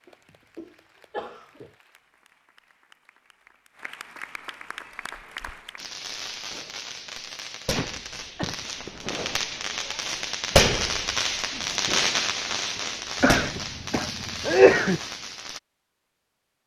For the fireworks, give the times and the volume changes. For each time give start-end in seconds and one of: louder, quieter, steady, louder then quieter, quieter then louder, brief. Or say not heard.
5.8-15.6 louder then quieter.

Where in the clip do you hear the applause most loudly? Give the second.
5 s.